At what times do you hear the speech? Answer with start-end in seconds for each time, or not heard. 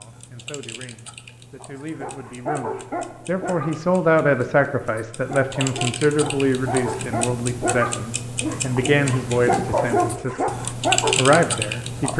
0.0-10.4, 11.2-12.1.